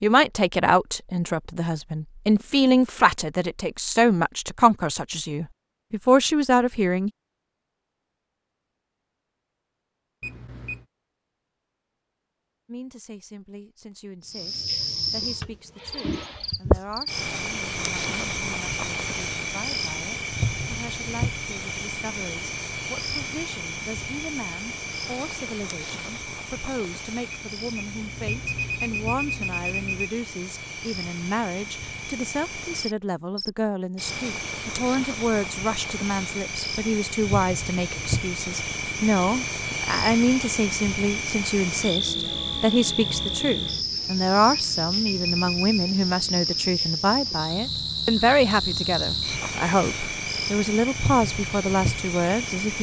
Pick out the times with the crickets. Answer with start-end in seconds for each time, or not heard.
14.2-52.7.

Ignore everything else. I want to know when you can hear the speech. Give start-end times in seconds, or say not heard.
0.0-7.1, 12.7-52.7.